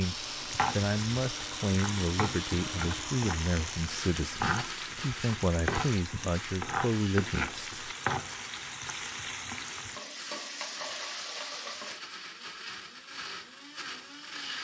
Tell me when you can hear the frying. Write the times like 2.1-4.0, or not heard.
0.0-12.0.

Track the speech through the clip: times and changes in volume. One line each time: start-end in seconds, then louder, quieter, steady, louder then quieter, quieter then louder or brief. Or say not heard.
0.0-7.8 steady.